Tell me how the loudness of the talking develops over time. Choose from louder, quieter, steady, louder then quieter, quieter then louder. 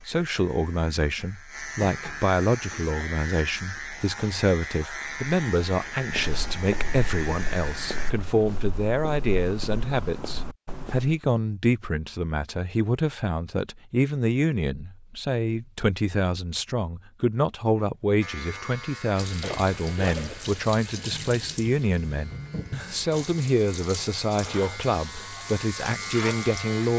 steady.